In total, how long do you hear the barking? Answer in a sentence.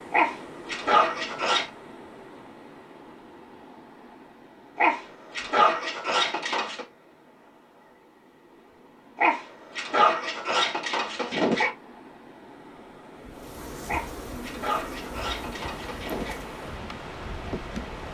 You can hear the barking for 9 seconds altogether.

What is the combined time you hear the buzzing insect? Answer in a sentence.
The buzzing insect can be heard for 5 seconds in total.